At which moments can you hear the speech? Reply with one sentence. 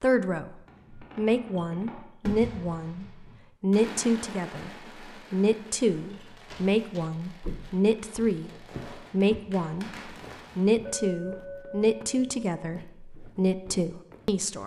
The speech can be heard from 0.0 to 4.7 s, from 5.3 to 8.5 s and from 9.1 to 14.6 s.